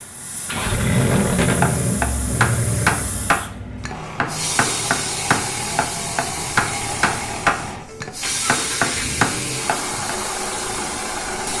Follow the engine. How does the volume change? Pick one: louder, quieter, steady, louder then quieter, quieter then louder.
quieter.